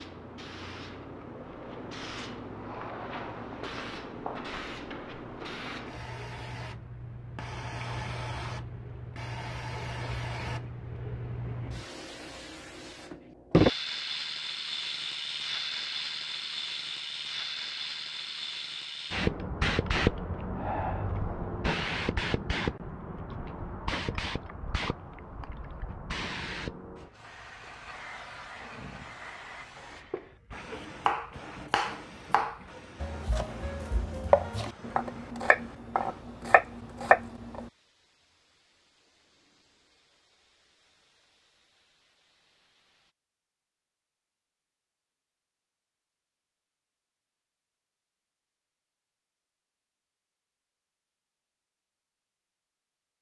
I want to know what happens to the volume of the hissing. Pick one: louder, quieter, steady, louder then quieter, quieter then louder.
louder then quieter.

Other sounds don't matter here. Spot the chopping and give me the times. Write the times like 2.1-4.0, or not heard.
30.7-37.7.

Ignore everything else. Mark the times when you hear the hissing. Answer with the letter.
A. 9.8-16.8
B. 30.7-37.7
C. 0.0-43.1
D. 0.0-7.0
C.